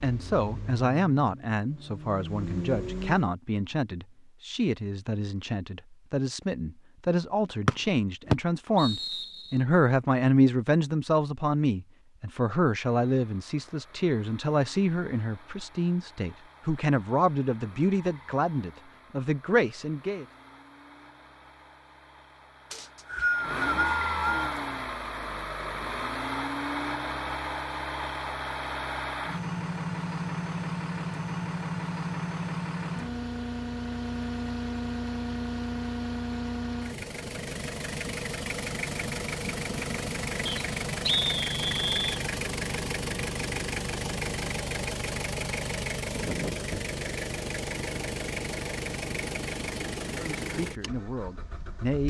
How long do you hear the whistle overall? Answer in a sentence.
The whistle can be heard for 5 seconds in total.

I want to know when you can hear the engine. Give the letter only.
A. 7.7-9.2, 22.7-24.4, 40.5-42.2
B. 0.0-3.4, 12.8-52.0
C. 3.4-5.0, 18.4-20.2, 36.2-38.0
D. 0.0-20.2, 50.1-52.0
B.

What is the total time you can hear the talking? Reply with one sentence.
The talking can be heard for 22 seconds in total.